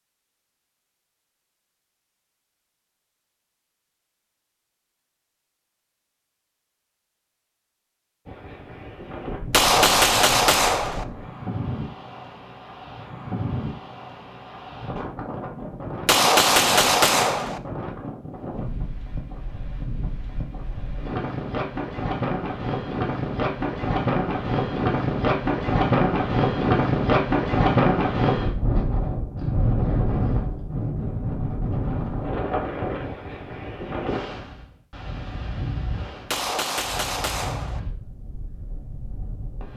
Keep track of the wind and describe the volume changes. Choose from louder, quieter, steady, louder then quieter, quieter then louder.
louder then quieter.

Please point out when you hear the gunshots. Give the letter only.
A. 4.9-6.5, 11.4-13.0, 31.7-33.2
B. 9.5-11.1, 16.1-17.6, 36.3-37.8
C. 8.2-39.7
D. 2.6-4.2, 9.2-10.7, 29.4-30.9
B.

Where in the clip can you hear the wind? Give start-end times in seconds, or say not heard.
8.2-39.7.